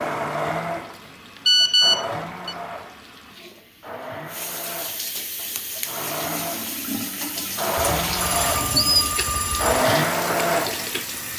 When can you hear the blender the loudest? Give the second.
10 s.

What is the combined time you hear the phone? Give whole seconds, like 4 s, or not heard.
3 s.